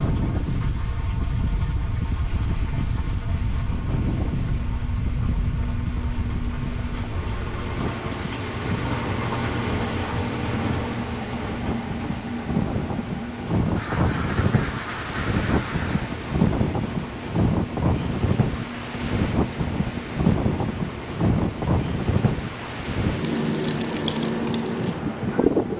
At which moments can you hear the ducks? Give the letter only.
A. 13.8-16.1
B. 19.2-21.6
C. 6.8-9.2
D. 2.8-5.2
A.